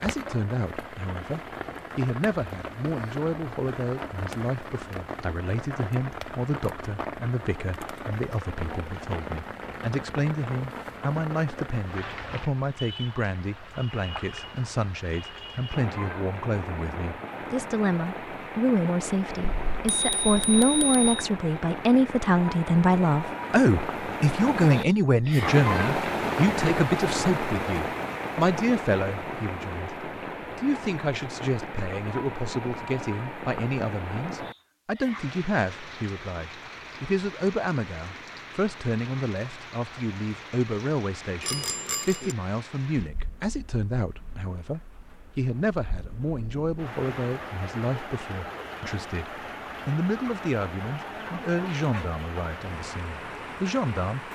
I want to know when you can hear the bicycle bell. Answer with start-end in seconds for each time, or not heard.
19.4-21.2, 41.4-42.4.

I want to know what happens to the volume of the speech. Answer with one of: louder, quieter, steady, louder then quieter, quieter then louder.
louder then quieter.